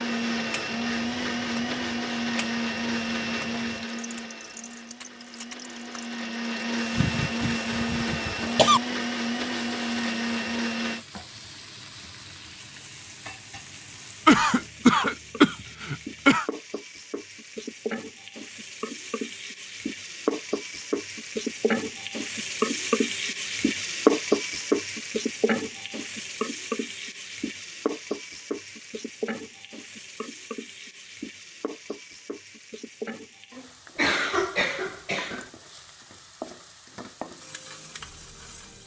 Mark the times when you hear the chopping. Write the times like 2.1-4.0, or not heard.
not heard.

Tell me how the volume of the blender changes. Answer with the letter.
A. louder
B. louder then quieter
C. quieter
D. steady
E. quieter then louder
E.